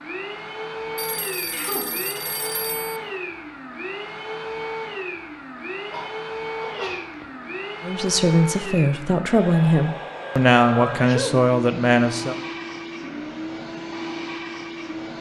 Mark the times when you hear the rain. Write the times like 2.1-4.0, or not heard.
not heard.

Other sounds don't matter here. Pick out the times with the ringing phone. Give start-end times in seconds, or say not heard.
0.9-3.0.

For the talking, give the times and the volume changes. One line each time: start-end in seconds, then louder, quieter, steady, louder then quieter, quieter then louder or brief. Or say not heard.
7.8-12.3 steady.